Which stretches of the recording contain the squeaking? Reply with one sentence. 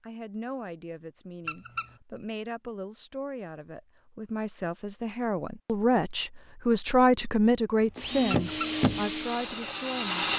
The squeaking can be heard from 1.4 to 1.9 s and from 8.3 to 8.8 s.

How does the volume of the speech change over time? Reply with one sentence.
The volume of the speech goes up, then down.